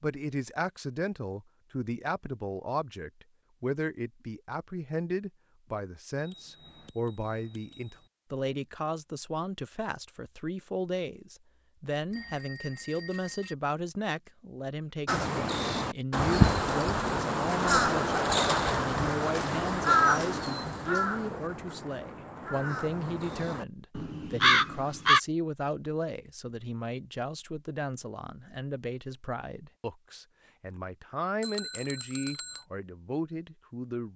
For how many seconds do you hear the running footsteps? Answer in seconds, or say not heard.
not heard.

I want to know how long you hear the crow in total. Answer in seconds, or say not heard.
10 s.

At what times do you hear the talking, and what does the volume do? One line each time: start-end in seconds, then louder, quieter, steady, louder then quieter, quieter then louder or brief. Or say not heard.
0.0-34.1 steady.